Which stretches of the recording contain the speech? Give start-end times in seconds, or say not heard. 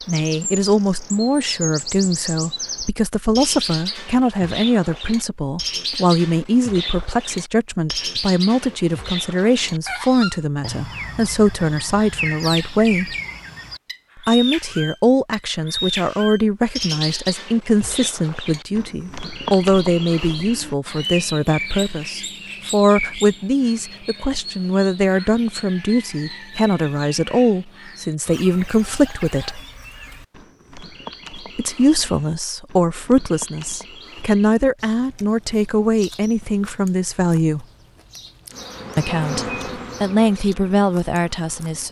0.1-13.2, 14.2-29.6, 31.6-37.6, 39.0-41.8.